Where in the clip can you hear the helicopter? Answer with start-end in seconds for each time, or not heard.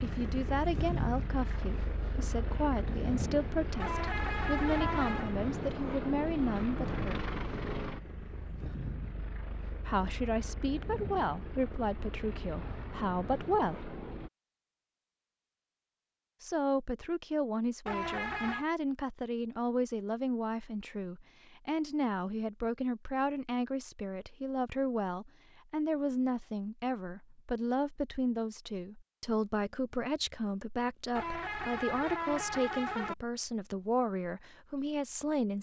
0.0-14.3.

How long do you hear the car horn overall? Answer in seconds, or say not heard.
4 s.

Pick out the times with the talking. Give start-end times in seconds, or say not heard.
0.0-7.3, 9.8-13.9, 16.4-35.5.